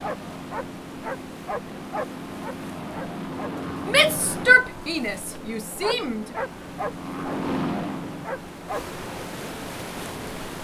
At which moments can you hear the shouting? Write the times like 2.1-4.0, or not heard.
3.9-6.2.